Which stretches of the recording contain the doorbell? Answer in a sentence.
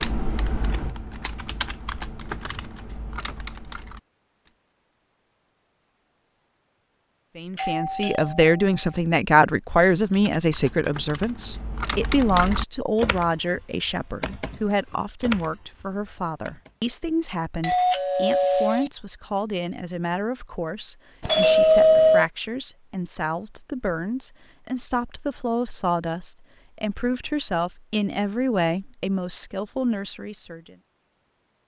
You can hear the doorbell from 7.5 to 8.9 s, from 17.6 to 18.9 s and from 21.2 to 22.2 s.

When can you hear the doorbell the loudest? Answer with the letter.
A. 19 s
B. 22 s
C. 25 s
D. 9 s
B.